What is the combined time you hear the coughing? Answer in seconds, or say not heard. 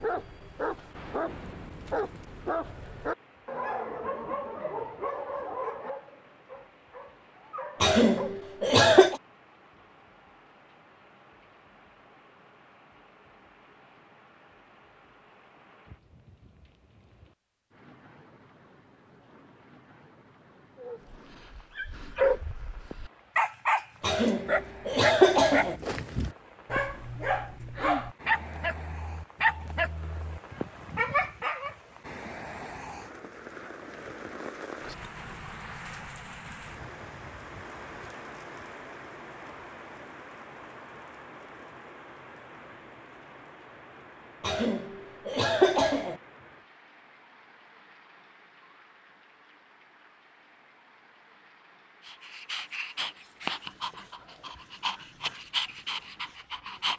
5 s.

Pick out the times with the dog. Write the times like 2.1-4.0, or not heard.
0.0-8.3, 20.8-31.8, 52.0-56.9.